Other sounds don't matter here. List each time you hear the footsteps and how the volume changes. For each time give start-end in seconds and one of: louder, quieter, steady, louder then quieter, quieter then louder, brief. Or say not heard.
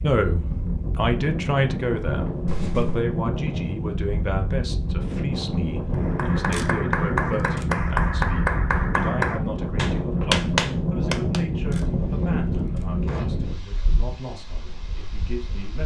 not heard.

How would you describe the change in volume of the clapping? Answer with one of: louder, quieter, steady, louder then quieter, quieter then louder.
louder.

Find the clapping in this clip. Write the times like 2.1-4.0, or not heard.
5.9-11.4.